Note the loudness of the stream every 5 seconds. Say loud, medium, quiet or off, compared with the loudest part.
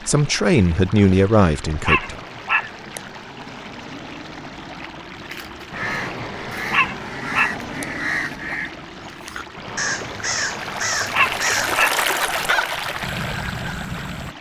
quiet, quiet, loud.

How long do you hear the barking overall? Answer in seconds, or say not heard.
3 s.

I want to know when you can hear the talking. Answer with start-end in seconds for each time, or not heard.
0.0-2.2.